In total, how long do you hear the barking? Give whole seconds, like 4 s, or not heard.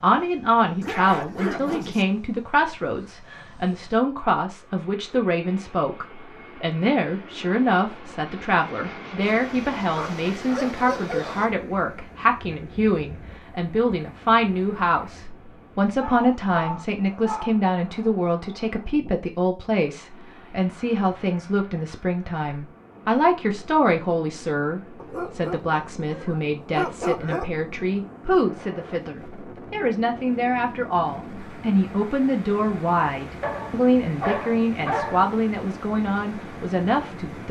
9 s.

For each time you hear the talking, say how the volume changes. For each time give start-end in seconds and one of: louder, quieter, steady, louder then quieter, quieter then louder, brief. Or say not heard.
0.0-37.4 steady.